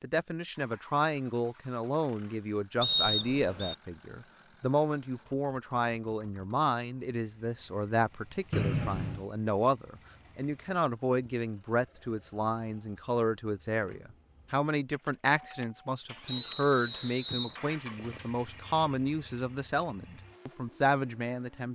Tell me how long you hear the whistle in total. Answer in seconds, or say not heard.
3 s.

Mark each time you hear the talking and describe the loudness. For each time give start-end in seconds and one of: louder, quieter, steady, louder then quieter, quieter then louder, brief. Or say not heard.
0.0-21.7 steady.